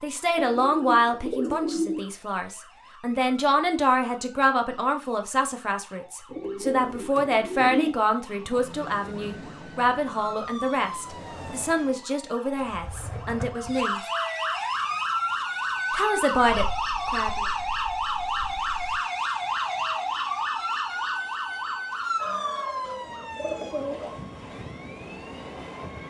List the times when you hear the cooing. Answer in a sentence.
You can hear the cooing from 0.3 to 2.0 s, from 6.3 to 8.0 s, from 12.6 to 13.8 s, from 16.5 to 19.0 s and from 22.2 to 24.2 s.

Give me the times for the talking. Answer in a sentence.
The talking can be heard from 0.0 to 14.0 s and from 15.9 to 17.4 s.